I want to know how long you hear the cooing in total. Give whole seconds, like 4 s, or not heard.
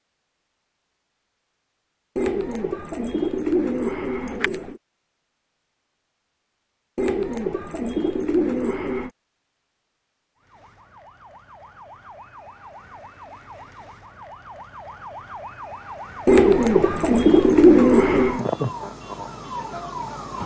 7 s.